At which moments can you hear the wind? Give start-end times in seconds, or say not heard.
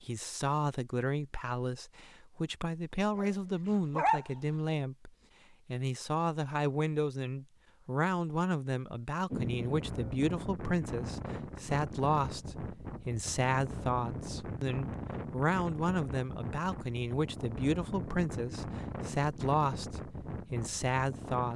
9.3-21.5.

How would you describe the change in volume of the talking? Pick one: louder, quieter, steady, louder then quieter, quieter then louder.
steady.